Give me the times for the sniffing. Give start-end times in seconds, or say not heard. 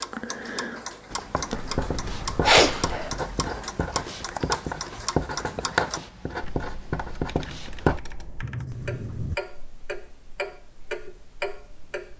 2.4-3.1.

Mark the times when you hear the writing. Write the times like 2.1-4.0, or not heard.
1.1-9.4.